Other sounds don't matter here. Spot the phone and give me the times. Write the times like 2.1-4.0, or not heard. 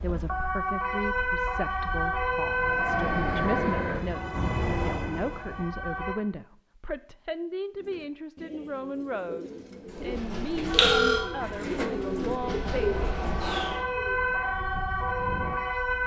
10.3-11.2.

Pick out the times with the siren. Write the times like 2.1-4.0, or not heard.
0.0-6.2, 10.7-16.0.